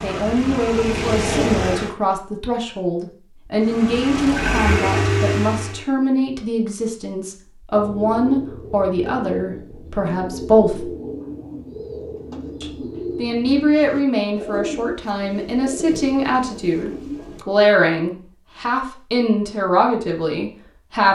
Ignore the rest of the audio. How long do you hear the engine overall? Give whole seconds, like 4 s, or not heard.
4 s.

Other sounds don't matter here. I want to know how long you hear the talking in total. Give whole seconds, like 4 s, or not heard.
19 s.